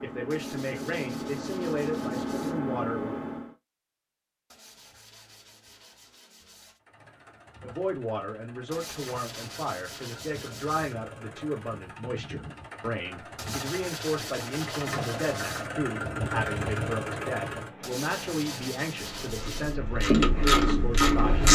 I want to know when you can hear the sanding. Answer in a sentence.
You can hear the sanding from 0.3 to 2.6 s, from 4.5 to 6.8 s, from 8.7 to 11.0 s, from 13.3 to 15.7 s and from 17.8 to 19.8 s.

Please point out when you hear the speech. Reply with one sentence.
The speech can be heard from 0.0 to 3.1 s and from 7.6 to 21.4 s.